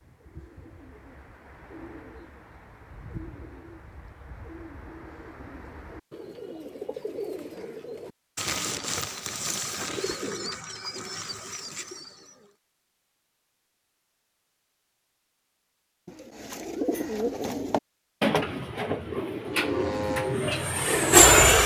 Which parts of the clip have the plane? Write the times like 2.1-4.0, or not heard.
19.4-21.6.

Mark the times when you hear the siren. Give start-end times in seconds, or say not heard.
not heard.